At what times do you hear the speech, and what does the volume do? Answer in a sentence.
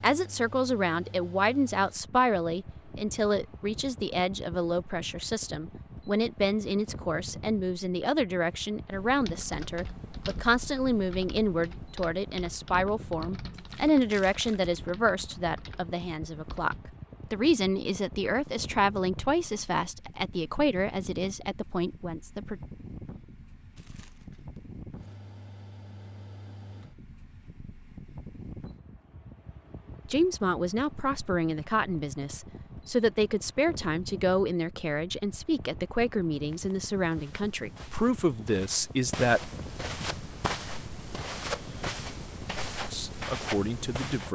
You can hear the speech from 0.0 to 22.6 s, at a steady volume; from 30.1 to 39.5 s, at a steady volume; and briefly from 42.9 to 44.3 s.